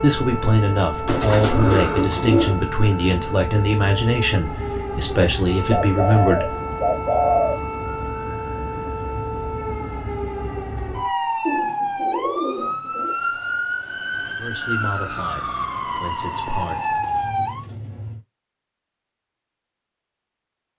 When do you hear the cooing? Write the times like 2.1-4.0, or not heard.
1.1-2.6, 5.7-7.5, 11.4-13.2, 16.2-18.2.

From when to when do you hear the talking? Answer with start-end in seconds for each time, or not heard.
0.0-6.5, 14.2-16.8.